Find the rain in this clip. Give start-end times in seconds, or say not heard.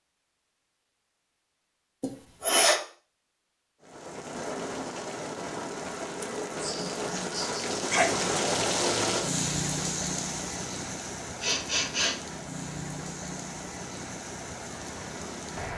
3.8-15.7.